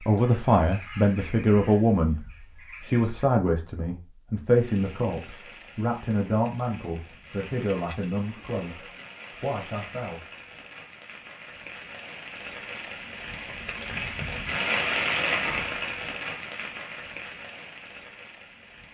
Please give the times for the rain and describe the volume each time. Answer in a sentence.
You can hear the rain from 4.5 to 18.8 s, getting louder then quieter.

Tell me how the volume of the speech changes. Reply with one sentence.
The loudness of the speech goes down.